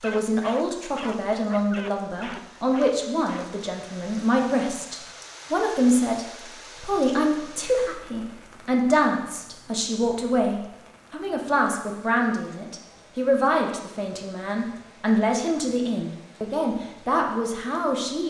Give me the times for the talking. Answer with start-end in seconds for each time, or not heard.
0.0-18.2.